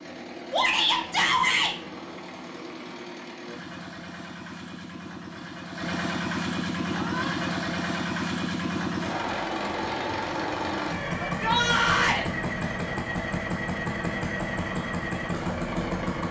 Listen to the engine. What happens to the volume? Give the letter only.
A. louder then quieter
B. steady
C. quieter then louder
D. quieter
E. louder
E.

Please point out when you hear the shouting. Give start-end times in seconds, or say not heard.
0.5-1.8, 6.9-7.3, 11.2-12.2.